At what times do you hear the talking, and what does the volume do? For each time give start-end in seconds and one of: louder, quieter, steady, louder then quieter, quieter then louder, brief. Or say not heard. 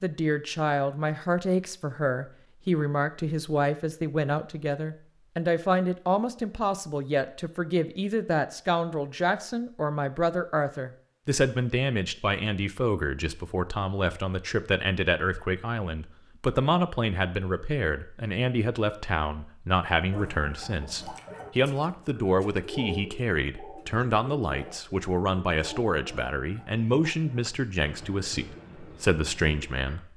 0.0-30.1 steady.